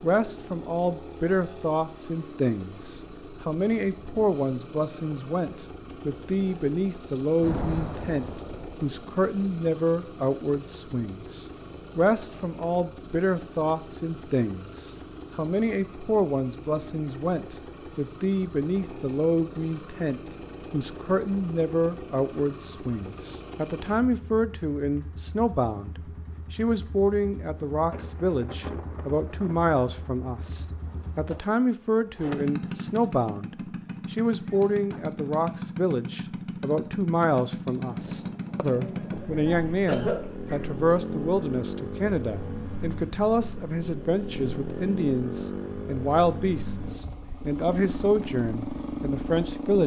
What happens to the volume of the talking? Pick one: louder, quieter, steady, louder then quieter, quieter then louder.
steady.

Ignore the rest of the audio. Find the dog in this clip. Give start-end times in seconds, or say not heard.
not heard.